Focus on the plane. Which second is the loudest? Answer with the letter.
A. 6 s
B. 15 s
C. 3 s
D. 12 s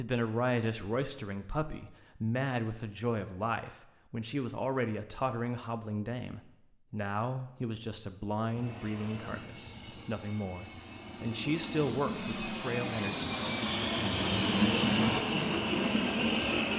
B.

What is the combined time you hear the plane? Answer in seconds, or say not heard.
8 s.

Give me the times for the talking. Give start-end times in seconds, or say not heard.
0.0-13.3.